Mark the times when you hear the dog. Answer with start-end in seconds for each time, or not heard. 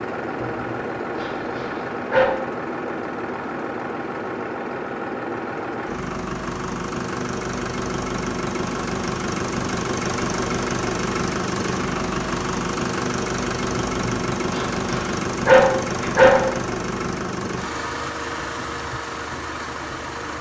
0.4-2.3, 13.8-16.5.